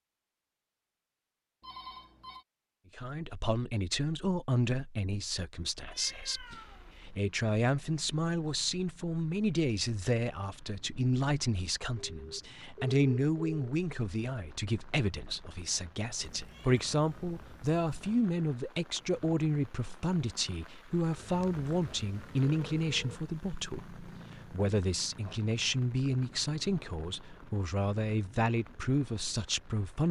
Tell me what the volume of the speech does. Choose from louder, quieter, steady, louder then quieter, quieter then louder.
steady.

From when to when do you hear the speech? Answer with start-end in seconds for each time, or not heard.
3.0-30.0.